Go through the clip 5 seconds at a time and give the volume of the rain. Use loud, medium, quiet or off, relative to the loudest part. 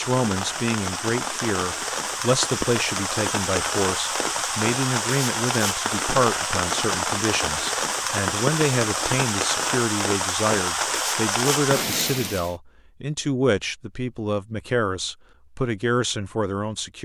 loud, loud, loud, off.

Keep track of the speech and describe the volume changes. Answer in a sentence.
The volume of the speech stays about the same.